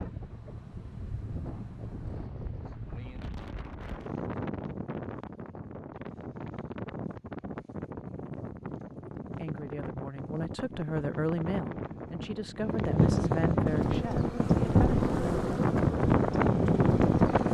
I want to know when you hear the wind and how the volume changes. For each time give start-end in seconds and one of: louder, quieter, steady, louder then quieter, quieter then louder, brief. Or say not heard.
0.0-17.4 louder.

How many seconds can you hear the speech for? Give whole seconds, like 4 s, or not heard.
6 s.